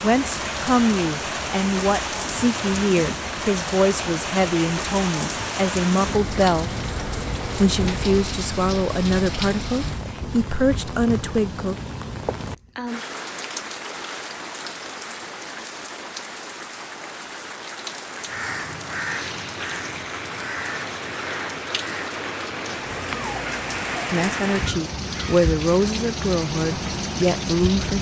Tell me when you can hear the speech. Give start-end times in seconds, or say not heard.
0.0-6.7, 7.5-11.8, 24.1-27.9.